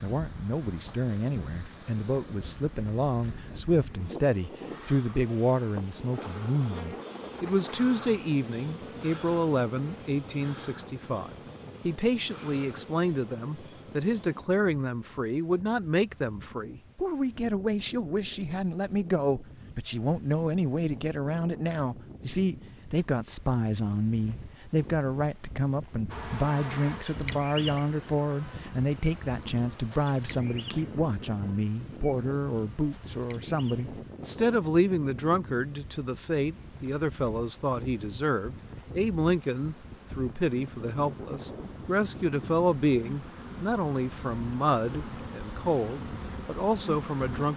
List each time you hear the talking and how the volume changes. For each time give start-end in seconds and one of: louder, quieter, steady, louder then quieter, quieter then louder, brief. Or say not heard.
0.0-47.5 steady.